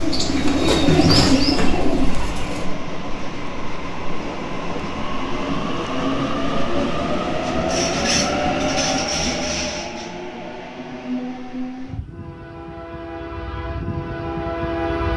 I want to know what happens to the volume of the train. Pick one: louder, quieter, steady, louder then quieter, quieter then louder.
louder then quieter.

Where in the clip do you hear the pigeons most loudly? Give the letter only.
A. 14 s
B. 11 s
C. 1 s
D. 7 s
C.